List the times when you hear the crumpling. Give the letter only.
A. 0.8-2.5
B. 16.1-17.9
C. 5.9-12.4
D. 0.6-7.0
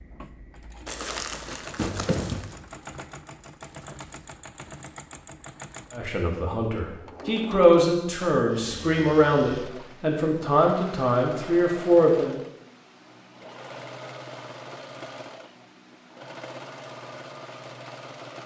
A.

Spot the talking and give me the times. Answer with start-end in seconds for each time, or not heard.
5.9-12.4.